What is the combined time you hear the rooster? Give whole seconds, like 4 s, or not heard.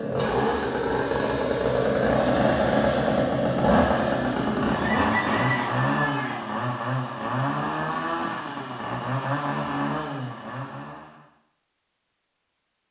2 s.